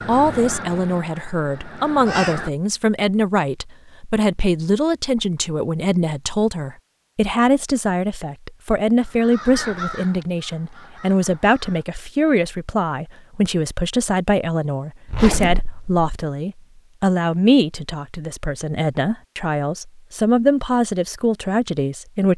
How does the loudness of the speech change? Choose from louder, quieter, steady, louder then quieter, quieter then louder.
steady.